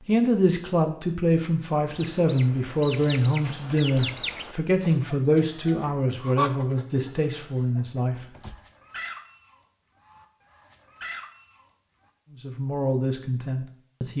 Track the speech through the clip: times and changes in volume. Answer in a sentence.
You can hear the speech from 0.1 to 8.2 s, at a steady volume; and briefly from 12.3 to 14.1 s.